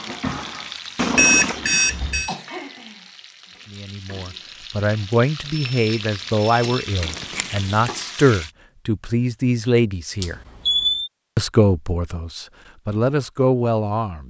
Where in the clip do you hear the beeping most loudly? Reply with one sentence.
The loudest moment of the beeping is at 1 second.